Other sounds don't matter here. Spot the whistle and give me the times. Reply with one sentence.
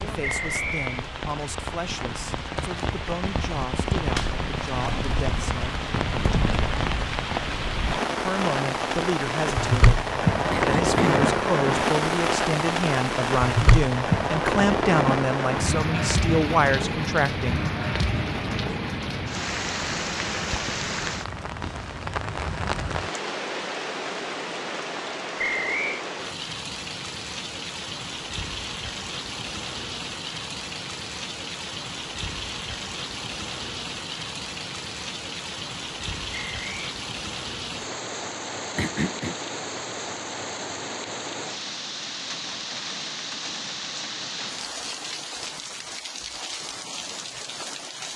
You can hear the whistle from 0.2 to 1.1 s, from 25.4 to 26.0 s and from 36.3 to 37.0 s.